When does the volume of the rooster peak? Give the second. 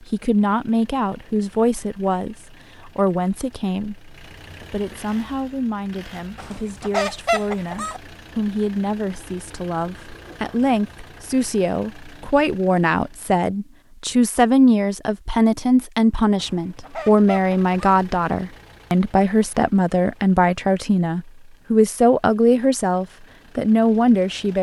7 s.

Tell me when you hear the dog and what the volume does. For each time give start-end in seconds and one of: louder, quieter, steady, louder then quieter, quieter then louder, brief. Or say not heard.
not heard.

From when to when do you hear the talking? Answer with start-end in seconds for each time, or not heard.
0.1-24.5.